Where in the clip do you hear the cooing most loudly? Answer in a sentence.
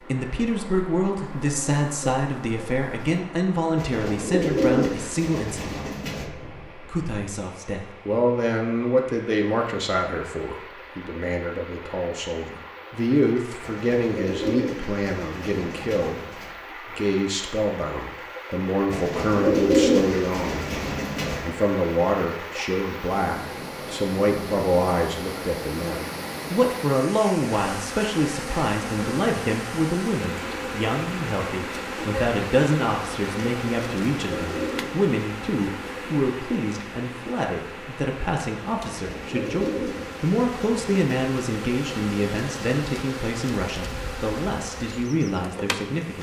The loudest moment of the cooing is at 20 seconds.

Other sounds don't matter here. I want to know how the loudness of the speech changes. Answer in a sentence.
The loudness of the speech stays about the same.